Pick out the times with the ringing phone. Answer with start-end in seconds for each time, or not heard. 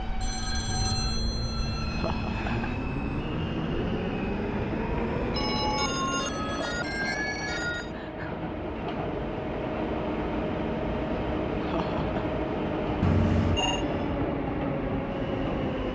0.2-2.9, 5.3-7.9, 13.0-13.8.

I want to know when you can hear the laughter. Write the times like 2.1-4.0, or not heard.
1.9-2.8, 6.5-8.3, 11.6-12.3.